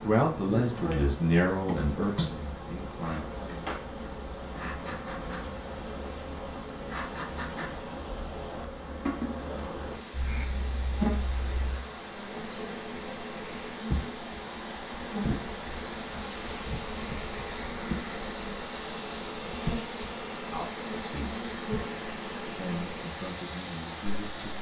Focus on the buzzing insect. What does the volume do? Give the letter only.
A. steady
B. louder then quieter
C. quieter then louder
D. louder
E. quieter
A.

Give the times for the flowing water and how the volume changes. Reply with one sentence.
The flowing water can be heard from 0.0 to 24.5 s, getting louder.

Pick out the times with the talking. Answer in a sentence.
You can hear the talking from 0.0 to 3.7 s, from 20.5 to 21.4 s and from 22.4 to 24.5 s.